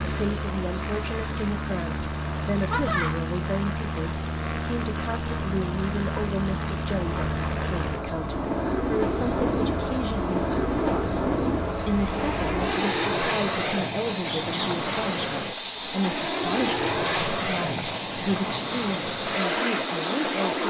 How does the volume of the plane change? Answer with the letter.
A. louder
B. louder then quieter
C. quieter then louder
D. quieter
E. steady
E.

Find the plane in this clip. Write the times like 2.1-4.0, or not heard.
0.0-20.6.